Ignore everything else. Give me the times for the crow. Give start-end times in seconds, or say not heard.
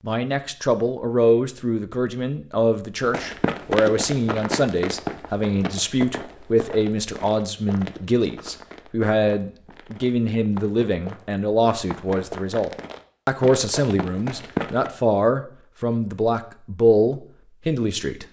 not heard.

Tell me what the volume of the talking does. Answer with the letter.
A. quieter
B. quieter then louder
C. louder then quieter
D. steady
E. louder
D.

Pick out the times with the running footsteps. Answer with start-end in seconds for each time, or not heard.
3.0-14.9.